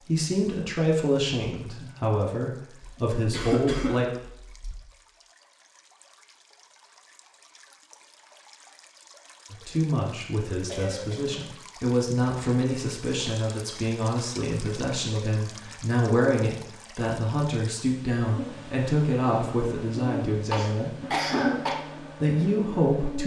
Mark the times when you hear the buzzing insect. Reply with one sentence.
You can hear the buzzing insect from 18.3 to 23.2 s.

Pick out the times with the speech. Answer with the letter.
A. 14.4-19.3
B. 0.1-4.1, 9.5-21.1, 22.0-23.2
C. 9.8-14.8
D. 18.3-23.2
B.